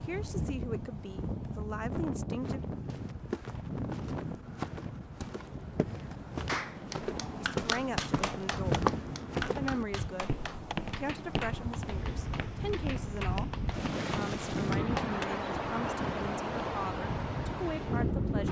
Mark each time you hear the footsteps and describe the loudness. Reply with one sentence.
You can hear the footsteps from 2.3 to 13.6 s, getting louder then quieter.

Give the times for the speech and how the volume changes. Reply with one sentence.
The speech can be heard briefly from 0.0 to 2.6 s; briefly from 7.4 to 8.8 s; and from 9.6 to 18.4 s, at a steady volume.